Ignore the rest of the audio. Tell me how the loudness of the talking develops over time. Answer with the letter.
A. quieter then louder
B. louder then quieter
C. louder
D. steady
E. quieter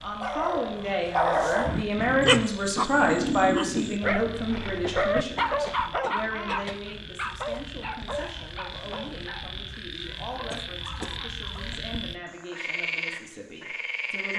E.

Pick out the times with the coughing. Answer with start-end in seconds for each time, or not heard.
1.6-2.5, 4.8-6.8, 10.5-11.2.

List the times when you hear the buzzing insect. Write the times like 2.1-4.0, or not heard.
not heard.